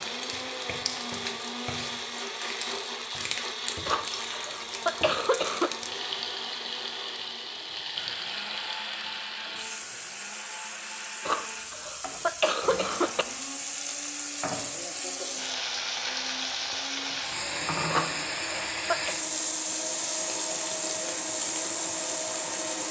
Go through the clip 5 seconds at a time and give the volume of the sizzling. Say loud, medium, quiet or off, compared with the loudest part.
medium, medium, medium, loud, loud.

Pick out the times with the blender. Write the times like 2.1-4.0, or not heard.
0.0-22.8.